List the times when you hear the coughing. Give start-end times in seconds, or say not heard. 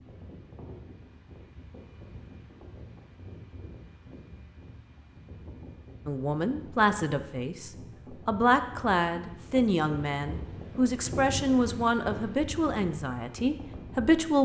not heard.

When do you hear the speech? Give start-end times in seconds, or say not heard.
6.0-14.3.